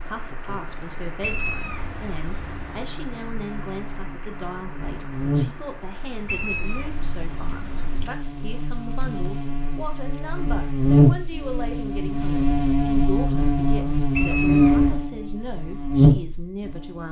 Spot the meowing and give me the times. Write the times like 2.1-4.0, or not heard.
1.2-2.9, 6.2-8.1, 14.2-15.1.